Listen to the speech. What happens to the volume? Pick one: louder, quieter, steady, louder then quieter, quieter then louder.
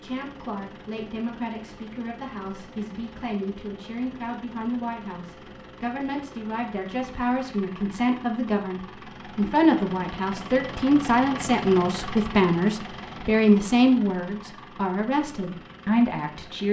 louder.